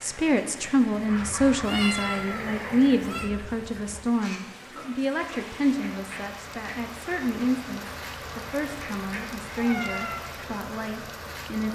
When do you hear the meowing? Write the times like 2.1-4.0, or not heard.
1.6-3.3, 9.6-10.2.